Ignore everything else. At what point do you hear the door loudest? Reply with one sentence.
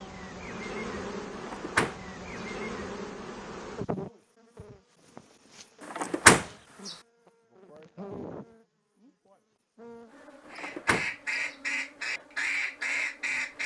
The volume of the door peaks at 6 seconds.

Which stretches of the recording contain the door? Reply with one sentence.
The door can be heard from 1.4 to 2.5 s, from 6.0 to 6.9 s and from 10.5 to 11.6 s.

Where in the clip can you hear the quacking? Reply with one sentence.
The quacking can be heard from 10.5 to 13.6 s.